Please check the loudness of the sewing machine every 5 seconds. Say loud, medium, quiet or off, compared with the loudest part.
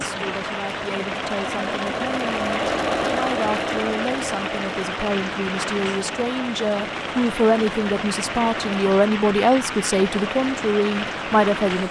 loud, medium, medium.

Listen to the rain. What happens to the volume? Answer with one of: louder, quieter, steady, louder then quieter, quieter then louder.
steady.